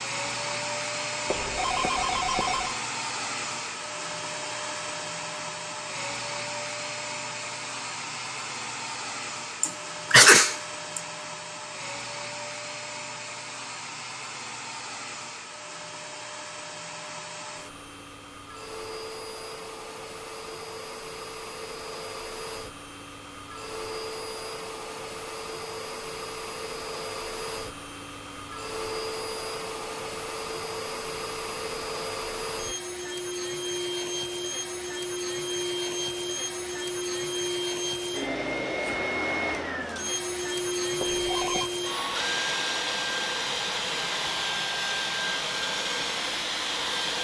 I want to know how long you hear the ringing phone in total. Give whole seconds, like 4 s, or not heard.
2 s.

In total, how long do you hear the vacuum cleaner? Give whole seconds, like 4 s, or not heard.
47 s.